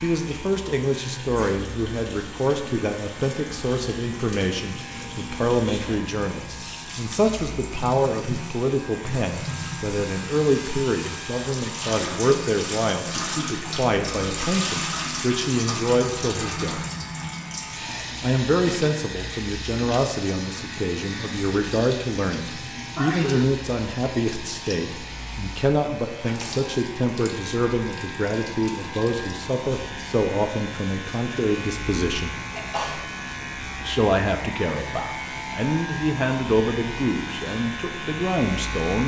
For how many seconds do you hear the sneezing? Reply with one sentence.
You can hear the sneezing for 2 seconds altogether.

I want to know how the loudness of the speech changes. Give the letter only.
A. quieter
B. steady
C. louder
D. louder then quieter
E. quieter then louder
B.